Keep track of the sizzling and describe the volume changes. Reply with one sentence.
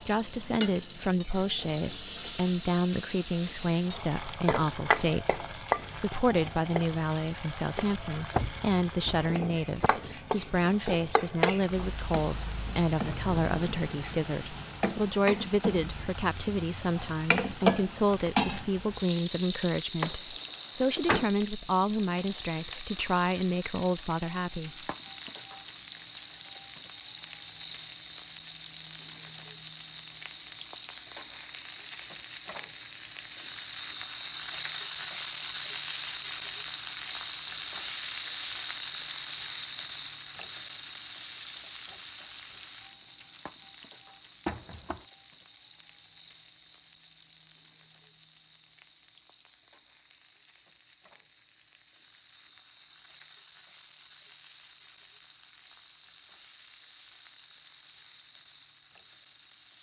The volume of the sizzling goes down.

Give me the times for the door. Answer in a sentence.
You can hear the door from 8.3 to 9.9 s, from 20.0 to 21.3 s and from 44.5 to 45.0 s.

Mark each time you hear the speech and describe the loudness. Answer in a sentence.
You can hear the speech from 0.1 to 24.9 s, at a steady volume.